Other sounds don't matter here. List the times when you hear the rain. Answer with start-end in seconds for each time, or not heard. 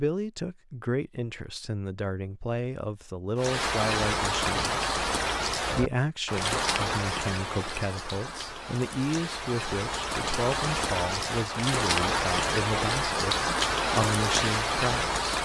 3.4-15.4.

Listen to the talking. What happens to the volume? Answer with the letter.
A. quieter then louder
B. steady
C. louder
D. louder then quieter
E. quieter
B.